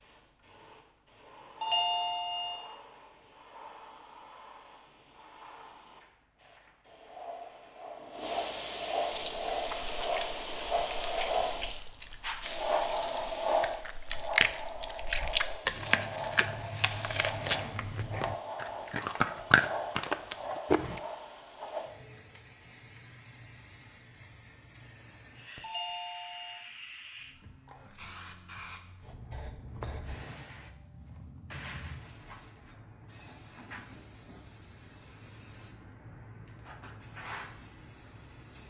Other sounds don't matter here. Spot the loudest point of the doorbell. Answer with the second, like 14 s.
2 s.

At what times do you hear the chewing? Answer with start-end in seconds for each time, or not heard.
9.1-21.0.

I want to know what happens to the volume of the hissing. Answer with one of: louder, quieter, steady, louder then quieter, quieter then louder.
louder then quieter.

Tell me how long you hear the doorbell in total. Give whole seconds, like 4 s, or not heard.
2 s.